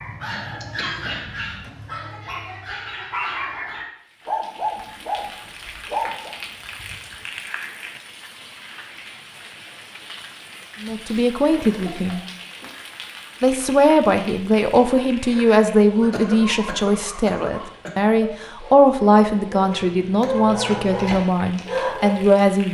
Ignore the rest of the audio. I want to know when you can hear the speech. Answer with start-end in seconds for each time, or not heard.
10.8-12.2, 13.4-22.6.